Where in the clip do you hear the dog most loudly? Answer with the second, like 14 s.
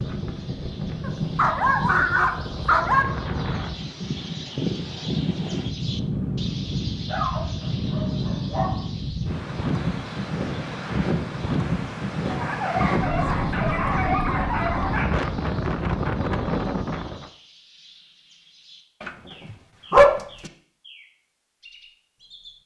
20 s.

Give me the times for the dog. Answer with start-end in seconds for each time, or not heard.
1.0-3.0, 7.0-8.8, 12.2-15.1, 19.0-20.5.